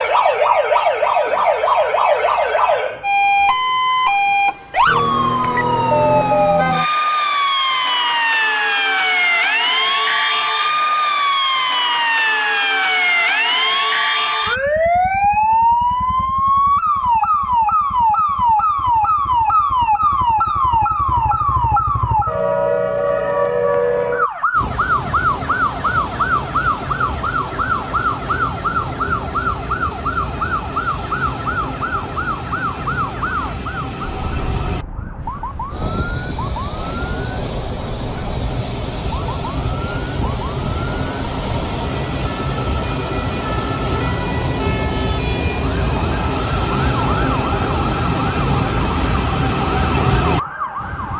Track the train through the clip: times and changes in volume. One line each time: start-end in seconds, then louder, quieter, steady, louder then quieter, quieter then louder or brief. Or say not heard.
24.5-51.1 louder.